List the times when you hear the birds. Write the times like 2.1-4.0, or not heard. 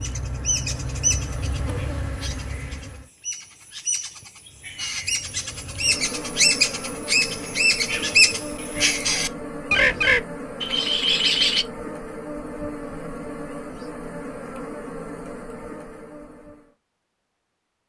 0.0-11.7.